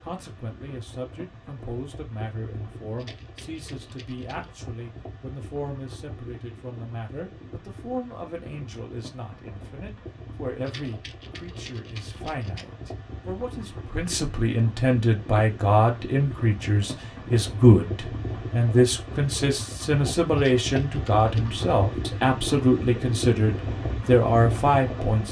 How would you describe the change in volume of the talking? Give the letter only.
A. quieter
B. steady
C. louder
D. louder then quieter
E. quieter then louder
C.